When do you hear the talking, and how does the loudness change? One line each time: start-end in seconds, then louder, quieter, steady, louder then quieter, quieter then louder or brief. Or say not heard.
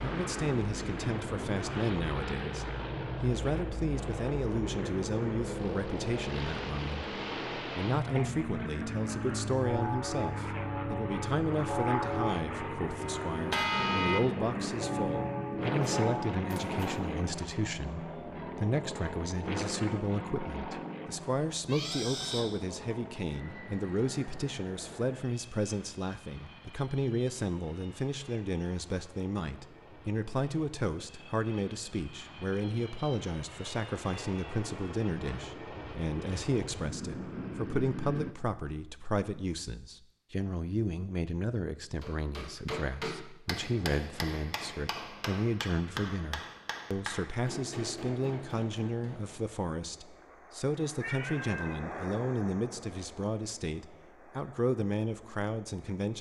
0.0-56.1 steady.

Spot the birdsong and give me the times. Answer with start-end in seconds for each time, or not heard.
not heard.